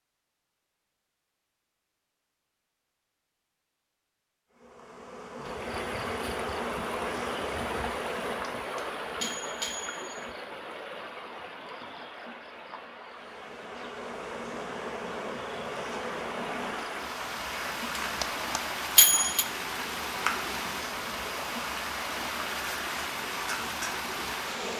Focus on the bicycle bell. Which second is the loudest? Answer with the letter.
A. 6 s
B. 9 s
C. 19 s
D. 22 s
C.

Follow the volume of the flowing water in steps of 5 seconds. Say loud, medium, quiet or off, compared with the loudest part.
off, loud, medium, loud, loud.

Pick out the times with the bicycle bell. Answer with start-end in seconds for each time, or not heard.
8.4-10.2, 18.2-19.4.